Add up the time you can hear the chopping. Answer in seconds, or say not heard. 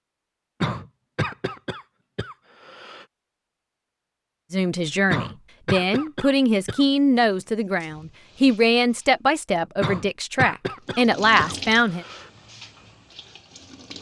not heard.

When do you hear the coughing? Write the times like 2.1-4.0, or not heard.
0.6-3.0, 5.1-6.8, 9.8-12.3.